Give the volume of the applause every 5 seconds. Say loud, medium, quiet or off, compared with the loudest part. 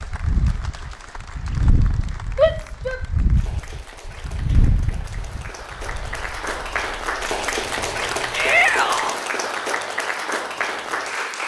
quiet, loud, loud.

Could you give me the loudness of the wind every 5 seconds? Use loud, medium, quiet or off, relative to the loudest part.
loud, quiet, off.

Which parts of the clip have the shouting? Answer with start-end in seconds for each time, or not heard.
2.4-3.0, 8.3-9.2.